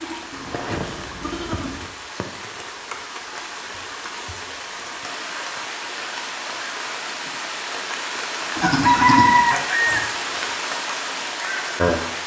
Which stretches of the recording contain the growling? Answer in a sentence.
You can't hear the growling here.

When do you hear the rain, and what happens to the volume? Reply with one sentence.
The rain can be heard from 0.0 to 12.2 s, getting louder.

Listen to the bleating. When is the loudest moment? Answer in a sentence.
The loudest moment of the bleating is at 9 seconds.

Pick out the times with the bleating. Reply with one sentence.
You can hear the bleating from 0.0 to 1.9 s and from 8.6 to 10.2 s.